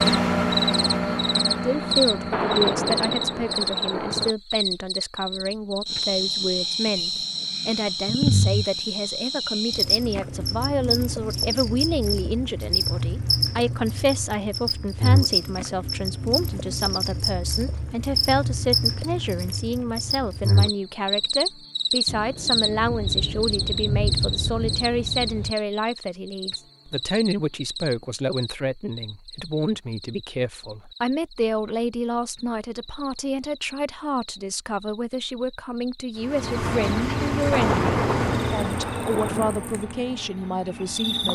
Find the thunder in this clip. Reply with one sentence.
The thunder can be heard from 2.3 to 4.3 s, from 22.1 to 25.6 s and from 37.5 to 39.5 s.